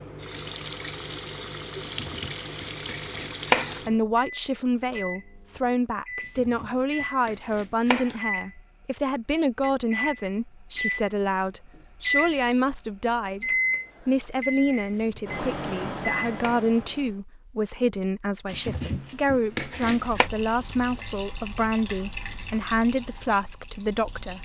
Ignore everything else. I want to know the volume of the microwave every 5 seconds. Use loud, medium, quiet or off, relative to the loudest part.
quiet, medium, loud, loud, off.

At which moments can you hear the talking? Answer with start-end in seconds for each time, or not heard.
3.9-13.4, 14.1-24.4.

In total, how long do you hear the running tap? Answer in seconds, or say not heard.
8 s.